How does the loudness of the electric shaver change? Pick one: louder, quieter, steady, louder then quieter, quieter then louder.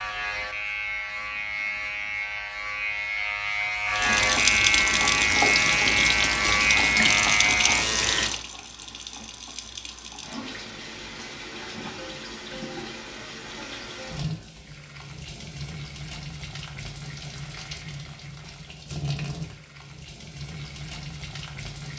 louder.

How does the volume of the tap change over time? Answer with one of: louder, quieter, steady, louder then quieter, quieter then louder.
quieter.